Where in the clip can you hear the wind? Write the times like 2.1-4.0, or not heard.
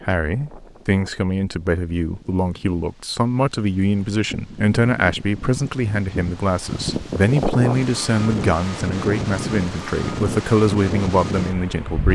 0.0-12.1.